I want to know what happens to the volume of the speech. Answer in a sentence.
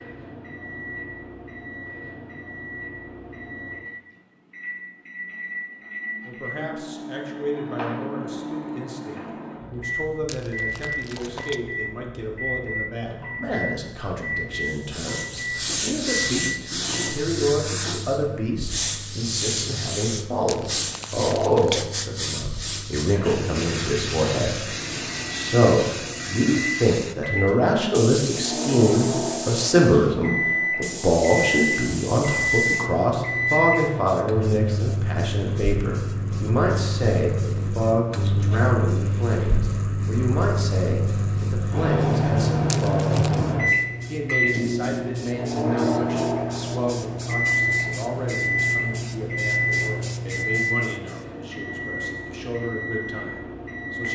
The volume of the speech goes up, then down.